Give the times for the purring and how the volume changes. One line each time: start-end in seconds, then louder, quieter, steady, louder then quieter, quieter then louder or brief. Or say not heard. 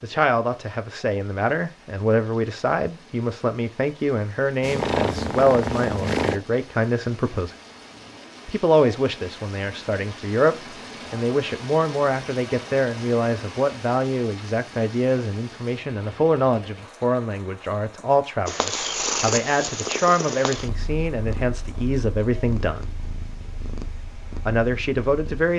4.6-6.4 brief
18.4-25.5 quieter.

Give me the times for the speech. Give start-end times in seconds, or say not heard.
0.0-7.5, 8.4-22.9, 24.4-25.5.